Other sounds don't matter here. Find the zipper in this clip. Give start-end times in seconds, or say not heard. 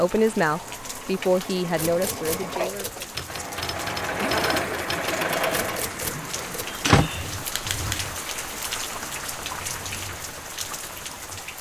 4.1-5.0.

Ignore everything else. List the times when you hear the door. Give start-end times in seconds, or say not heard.
6.2-7.1.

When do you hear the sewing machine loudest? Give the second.
5 s.